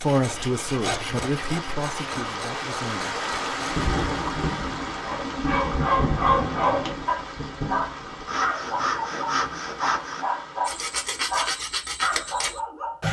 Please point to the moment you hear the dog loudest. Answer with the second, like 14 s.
6 s.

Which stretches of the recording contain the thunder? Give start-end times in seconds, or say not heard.
3.7-8.2.